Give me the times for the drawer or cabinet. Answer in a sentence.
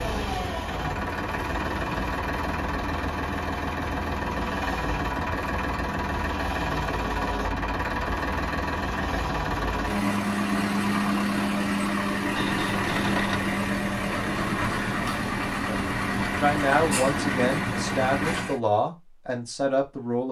The drawer or cabinet can be heard from 12.3 to 13.5 s.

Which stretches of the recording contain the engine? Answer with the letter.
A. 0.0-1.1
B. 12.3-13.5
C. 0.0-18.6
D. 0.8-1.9
C.